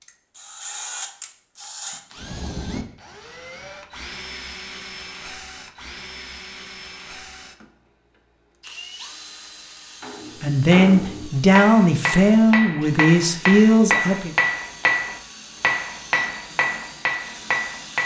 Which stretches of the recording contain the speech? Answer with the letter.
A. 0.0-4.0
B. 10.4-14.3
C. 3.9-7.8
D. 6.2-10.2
B.